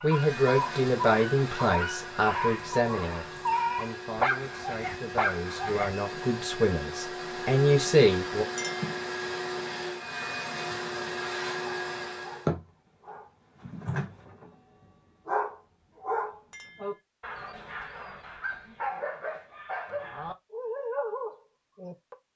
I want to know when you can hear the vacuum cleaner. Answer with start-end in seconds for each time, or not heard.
0.0-12.5.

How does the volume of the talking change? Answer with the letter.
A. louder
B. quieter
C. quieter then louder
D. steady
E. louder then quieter
C.